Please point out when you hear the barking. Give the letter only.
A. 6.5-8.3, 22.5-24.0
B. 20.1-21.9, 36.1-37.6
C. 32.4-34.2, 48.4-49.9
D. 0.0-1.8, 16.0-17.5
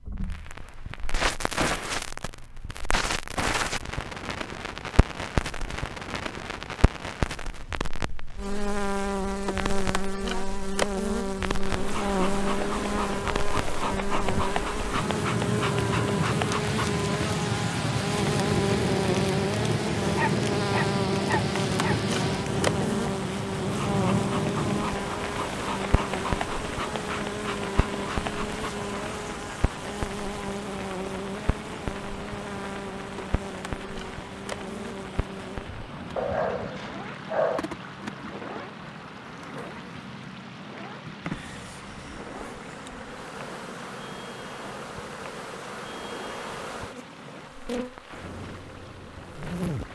B.